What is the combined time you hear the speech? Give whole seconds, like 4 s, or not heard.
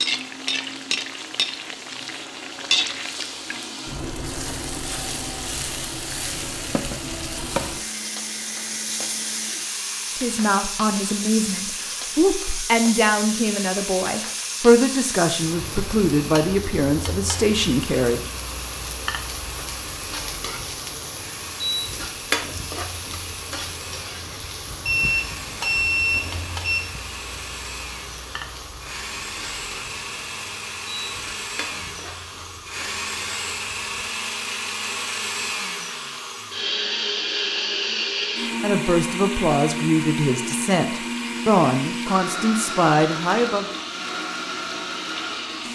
13 s.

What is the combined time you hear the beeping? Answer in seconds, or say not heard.
2 s.